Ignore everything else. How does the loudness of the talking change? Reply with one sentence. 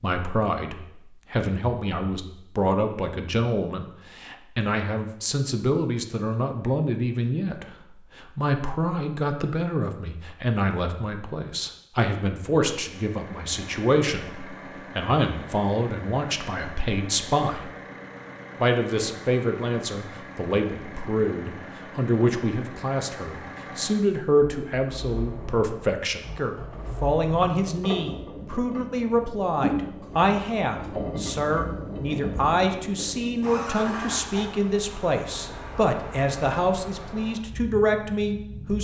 The volume of the talking stays about the same.